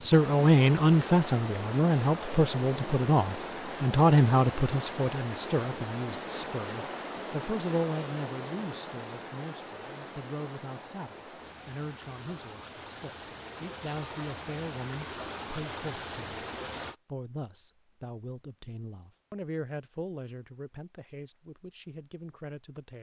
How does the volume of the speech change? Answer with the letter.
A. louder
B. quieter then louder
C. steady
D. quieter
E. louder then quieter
D.